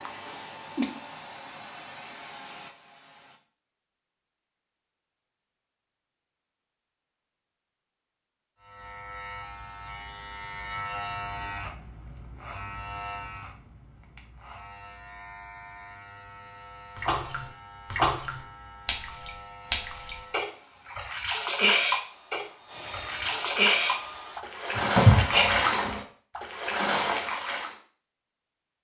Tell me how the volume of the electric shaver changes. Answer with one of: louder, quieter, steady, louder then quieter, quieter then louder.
quieter.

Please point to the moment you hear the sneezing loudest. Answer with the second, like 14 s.
25 s.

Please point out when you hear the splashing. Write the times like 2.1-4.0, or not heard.
16.9-27.8.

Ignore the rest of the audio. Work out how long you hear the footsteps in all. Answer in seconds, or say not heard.
not heard.